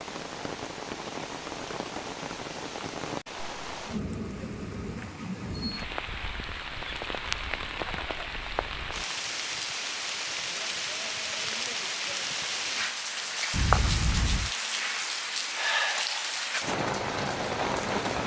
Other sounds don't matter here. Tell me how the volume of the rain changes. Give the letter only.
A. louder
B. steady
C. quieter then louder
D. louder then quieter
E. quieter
A.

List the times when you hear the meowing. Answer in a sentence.
You can hear the meowing from 13.5 to 14.5 s.